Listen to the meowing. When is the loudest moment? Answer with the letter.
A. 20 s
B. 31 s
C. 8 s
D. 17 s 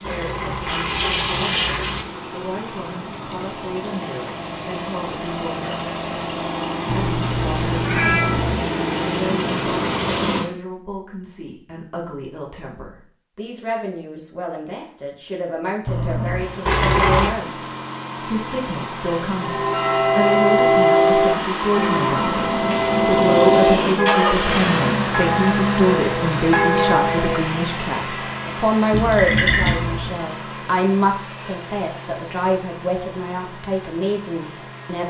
C.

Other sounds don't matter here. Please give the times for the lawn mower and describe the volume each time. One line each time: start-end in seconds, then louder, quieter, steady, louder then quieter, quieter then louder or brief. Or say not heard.
0.0-10.4 louder
16.3-35.0 louder then quieter.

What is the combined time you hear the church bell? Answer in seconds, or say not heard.
8 s.